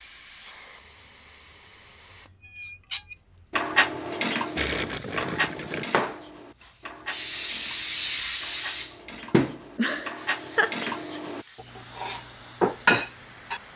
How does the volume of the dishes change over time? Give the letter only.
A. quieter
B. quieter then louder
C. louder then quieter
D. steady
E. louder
B.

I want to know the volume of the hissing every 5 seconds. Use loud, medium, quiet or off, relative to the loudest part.
quiet, loud, quiet.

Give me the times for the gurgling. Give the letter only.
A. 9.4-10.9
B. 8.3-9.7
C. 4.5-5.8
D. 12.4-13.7
C.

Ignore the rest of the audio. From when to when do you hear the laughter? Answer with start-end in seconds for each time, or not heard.
9.4-10.9.